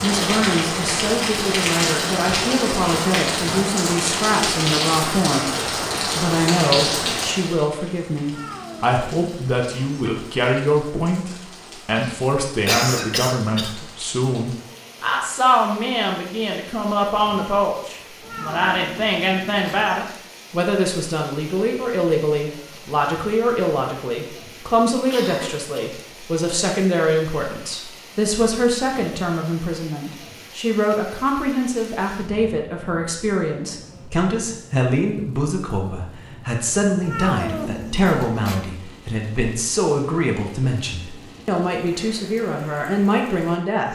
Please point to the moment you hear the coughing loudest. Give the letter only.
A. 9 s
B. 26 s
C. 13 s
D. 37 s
C.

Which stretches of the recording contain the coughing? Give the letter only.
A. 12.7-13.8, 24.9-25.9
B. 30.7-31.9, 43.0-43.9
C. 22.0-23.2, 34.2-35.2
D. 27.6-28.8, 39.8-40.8
A.